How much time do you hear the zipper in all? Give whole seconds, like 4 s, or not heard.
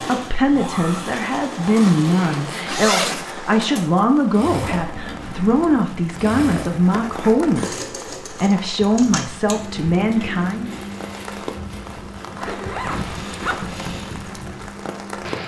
4 s.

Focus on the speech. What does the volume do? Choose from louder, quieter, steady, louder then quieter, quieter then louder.
steady.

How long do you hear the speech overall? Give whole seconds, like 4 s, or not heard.
11 s.